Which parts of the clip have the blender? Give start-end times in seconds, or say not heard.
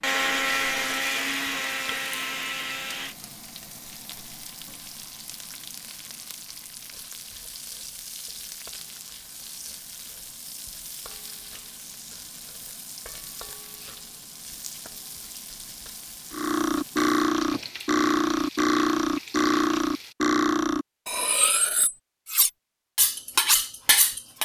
0.0-3.1.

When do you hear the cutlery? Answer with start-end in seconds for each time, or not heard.
16.3-24.3.